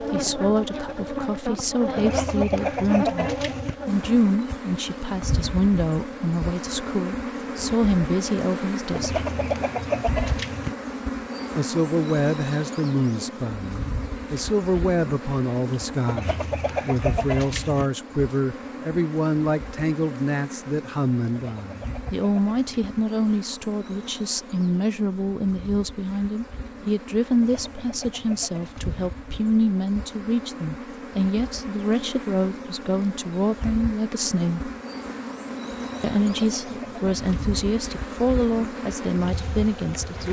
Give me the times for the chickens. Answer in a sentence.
The chickens can be heard from 1.9 to 3.8 s, from 8.9 to 10.8 s, from 16.1 to 17.9 s, from 21.2 to 23.1 s, from 27.3 to 28.9 s and from 35.8 to 37.5 s.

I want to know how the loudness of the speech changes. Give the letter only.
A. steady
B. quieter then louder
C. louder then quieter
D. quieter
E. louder
A.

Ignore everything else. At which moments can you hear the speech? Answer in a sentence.
You can hear the speech from 0.0 to 9.2 s, from 11.6 to 34.7 s and from 36.0 to 40.2 s.